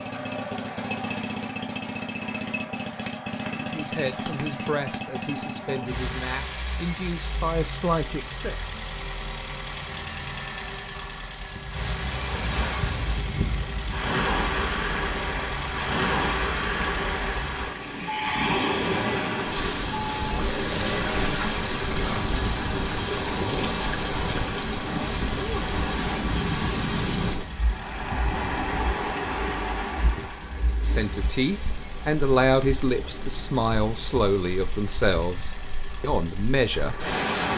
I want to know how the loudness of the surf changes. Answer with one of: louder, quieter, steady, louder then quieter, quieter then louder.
quieter.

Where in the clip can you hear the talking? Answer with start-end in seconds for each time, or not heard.
3.5-8.6, 30.6-37.5.